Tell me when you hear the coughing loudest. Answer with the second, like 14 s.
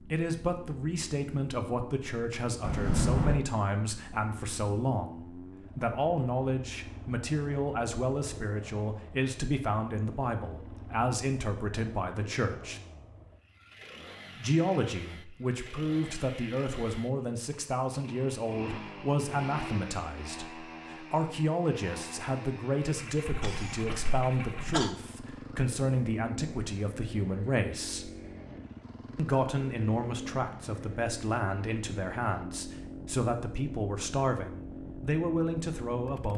3 s.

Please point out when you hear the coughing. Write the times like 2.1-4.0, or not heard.
2.6-3.4, 23.2-24.9.